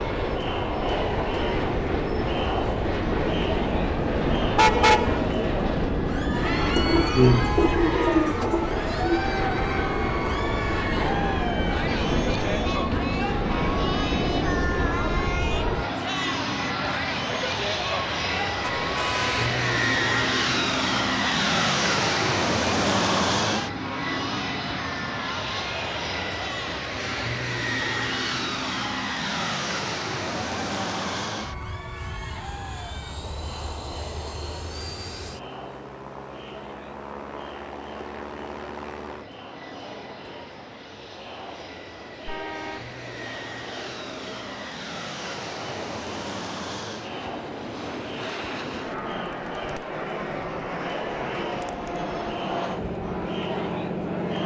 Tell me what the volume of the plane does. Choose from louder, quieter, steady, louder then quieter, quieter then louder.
quieter then louder.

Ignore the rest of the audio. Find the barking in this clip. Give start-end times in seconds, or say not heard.
not heard.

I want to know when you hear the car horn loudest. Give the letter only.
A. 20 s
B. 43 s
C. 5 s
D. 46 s
C.